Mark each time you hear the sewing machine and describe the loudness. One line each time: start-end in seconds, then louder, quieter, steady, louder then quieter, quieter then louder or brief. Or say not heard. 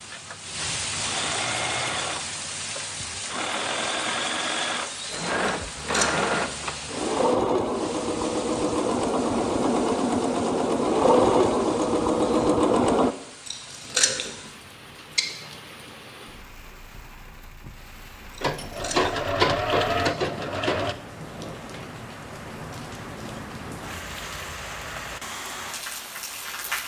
0.0-13.2 louder
18.4-20.9 brief.